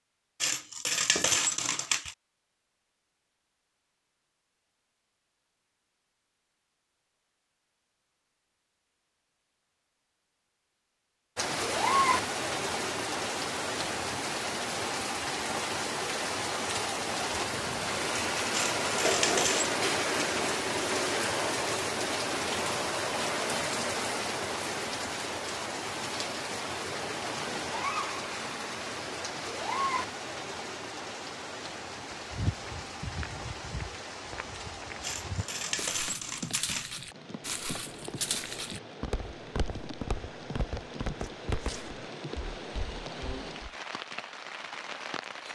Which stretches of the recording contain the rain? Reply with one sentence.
You can hear the rain from 11.3 to 45.5 s.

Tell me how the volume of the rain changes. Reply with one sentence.
The loudness of the rain goes down.